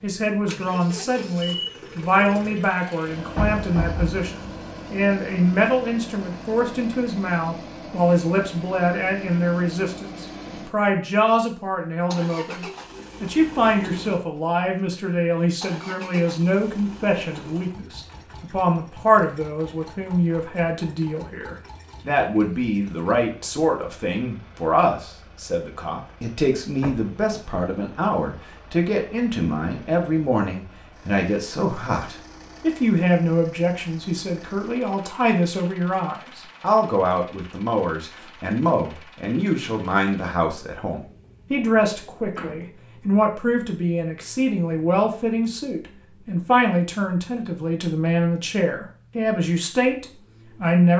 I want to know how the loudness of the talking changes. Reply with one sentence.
The volume of the talking stays about the same.